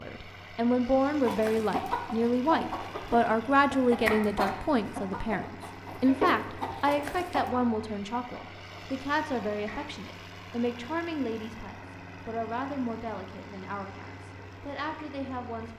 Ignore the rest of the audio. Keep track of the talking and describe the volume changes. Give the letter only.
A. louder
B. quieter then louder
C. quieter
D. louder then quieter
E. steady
C.